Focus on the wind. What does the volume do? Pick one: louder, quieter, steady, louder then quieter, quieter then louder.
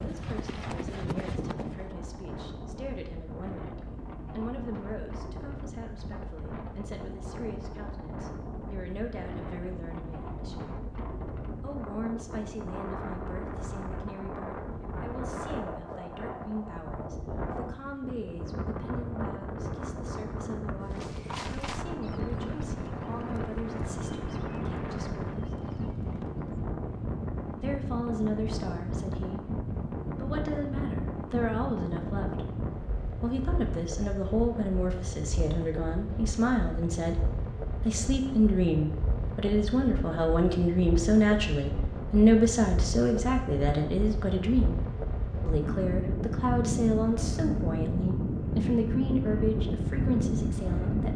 louder.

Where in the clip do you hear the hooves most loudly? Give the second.
1 s.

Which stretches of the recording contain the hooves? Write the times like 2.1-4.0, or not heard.
0.0-1.9, 20.9-26.5.